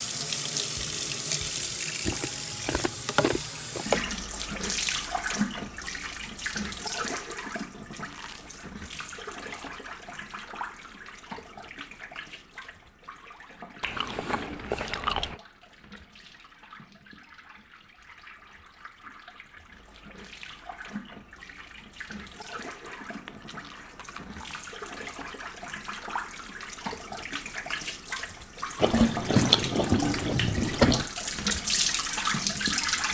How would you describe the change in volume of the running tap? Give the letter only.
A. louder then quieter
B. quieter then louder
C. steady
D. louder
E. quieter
B.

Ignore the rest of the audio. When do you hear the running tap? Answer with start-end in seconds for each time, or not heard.
0.0-33.0.